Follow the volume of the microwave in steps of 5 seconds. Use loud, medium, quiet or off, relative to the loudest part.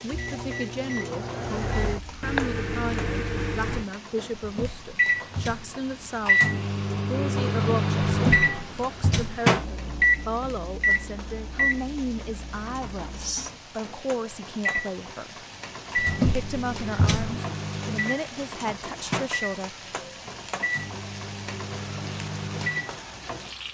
medium, loud, loud, medium, medium.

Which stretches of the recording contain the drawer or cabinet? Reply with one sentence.
The drawer or cabinet can be heard from 4.3 to 5.8 s, from 8.1 to 9.4 s and from 15.9 to 17.4 s.